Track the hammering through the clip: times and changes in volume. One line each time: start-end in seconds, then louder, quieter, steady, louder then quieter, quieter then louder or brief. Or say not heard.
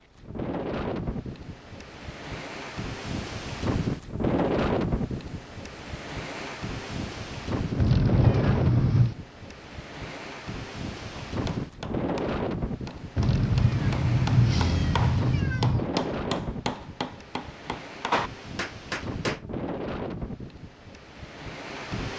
11.2-19.4 louder.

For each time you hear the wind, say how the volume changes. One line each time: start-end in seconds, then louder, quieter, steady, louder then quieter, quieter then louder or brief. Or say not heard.
0.0-22.1 quieter.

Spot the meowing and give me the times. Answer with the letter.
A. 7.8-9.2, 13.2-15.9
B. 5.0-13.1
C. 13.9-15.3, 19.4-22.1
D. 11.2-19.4
A.